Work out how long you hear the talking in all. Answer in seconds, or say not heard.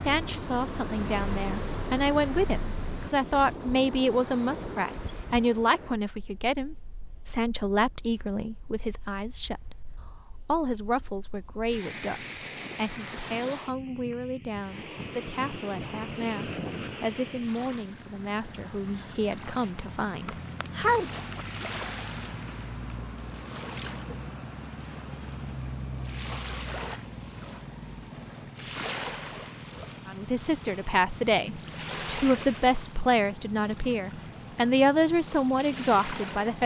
28 s.